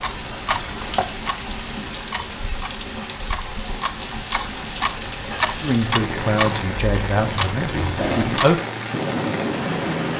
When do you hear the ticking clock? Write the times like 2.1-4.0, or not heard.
0.0-10.1.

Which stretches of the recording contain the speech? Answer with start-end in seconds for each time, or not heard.
5.6-8.6.